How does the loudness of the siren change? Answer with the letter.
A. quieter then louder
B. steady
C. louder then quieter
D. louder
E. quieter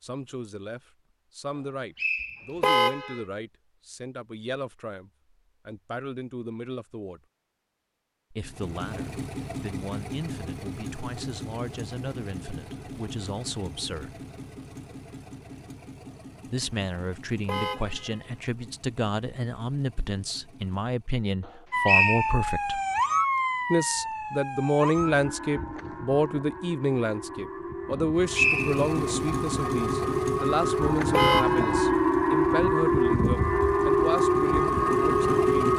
A.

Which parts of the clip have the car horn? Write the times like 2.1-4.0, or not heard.
2.6-3.2, 17.4-18.3, 31.1-31.9.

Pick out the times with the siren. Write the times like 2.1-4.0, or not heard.
21.7-35.7.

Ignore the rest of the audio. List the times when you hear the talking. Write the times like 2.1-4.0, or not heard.
0.0-7.2, 8.3-14.2, 16.4-22.8, 23.7-35.7.